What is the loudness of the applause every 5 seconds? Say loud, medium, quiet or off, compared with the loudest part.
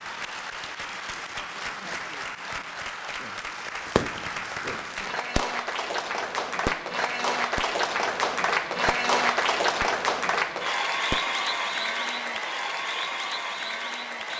medium, loud, loud.